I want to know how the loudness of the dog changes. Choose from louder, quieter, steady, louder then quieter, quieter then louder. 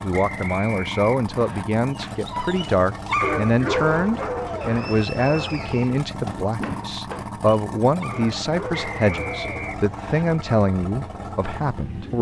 quieter.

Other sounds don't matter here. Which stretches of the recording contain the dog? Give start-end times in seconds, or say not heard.
1.9-9.8.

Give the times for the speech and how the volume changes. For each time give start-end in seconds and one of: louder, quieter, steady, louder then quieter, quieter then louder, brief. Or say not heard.
0.0-12.1 steady.